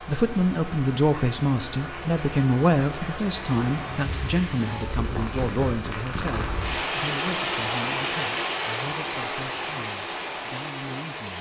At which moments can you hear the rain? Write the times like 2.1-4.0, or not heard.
0.0-11.3.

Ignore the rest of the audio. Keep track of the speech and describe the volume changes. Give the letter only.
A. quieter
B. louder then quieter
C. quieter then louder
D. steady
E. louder
A.